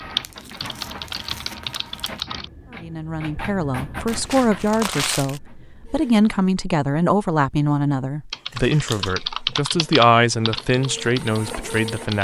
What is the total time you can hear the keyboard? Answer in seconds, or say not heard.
6 s.